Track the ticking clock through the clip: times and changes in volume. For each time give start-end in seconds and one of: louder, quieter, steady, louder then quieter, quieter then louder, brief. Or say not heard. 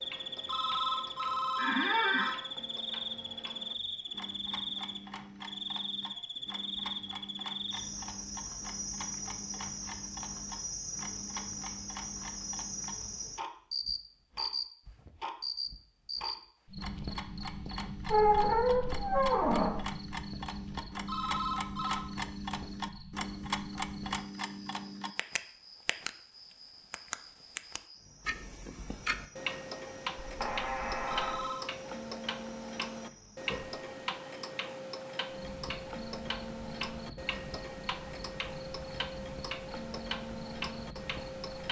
0.0-41.6 louder.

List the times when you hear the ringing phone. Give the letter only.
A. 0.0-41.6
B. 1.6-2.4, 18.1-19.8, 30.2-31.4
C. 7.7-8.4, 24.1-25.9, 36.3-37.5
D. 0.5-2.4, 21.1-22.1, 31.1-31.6
D.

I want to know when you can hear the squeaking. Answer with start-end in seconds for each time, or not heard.
1.6-2.4, 18.1-19.8, 30.2-31.4.